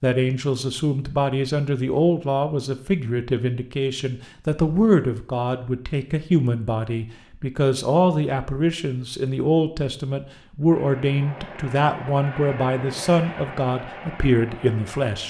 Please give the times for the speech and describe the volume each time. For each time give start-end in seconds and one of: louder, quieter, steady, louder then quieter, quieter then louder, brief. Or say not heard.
0.0-15.2 steady.